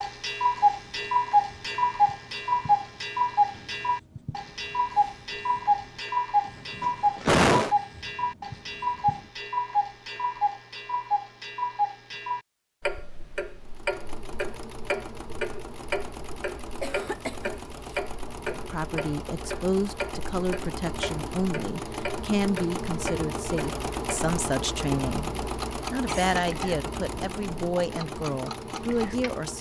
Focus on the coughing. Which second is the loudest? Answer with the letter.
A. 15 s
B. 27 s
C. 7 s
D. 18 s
C.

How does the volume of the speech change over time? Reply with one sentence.
The loudness of the speech stays about the same.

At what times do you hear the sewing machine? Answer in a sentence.
You can hear the sewing machine from 13.6 to 29.5 s.